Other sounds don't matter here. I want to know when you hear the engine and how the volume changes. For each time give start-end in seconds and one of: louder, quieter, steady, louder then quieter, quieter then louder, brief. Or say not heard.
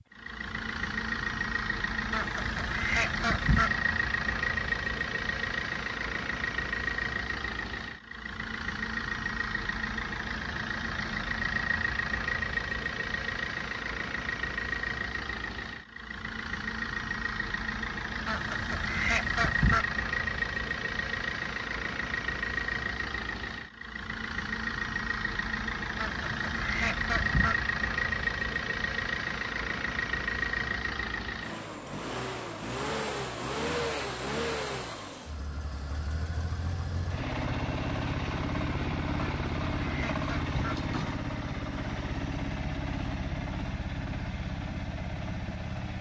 0.0-45.9 steady.